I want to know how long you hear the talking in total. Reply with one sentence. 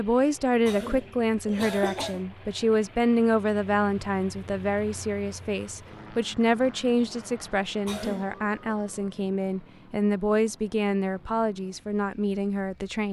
The talking can be heard for 13 seconds in total.